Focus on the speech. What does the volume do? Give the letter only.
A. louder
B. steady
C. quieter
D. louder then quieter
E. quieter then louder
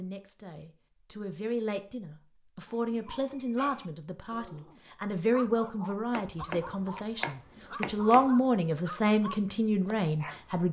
A.